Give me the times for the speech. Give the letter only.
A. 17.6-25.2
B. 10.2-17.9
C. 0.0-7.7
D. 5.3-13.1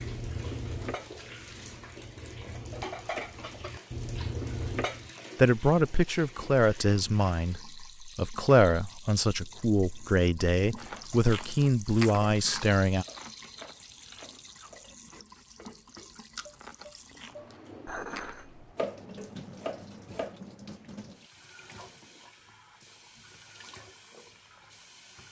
D.